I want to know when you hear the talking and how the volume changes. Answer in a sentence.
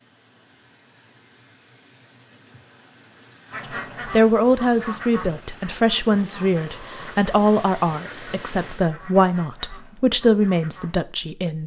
The talking can be heard from 4.1 to 11.6 s, at a steady volume.